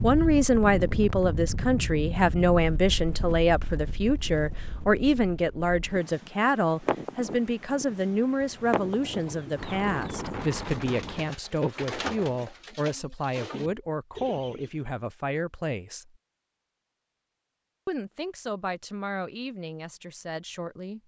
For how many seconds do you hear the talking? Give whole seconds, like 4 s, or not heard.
19 s.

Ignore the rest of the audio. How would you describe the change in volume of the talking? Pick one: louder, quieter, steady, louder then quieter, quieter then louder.
quieter.